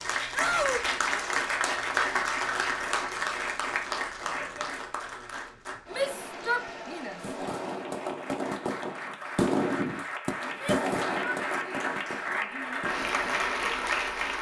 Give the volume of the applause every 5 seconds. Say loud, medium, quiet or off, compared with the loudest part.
loud, medium, loud.